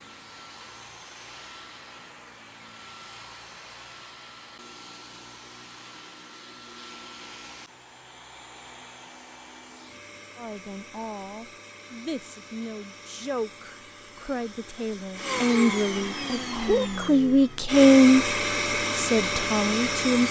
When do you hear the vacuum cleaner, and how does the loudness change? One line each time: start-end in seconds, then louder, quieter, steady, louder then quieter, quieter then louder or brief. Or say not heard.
0.0-20.2 louder.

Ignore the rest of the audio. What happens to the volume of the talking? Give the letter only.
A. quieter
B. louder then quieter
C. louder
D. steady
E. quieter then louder
C.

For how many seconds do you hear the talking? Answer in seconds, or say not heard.
10 s.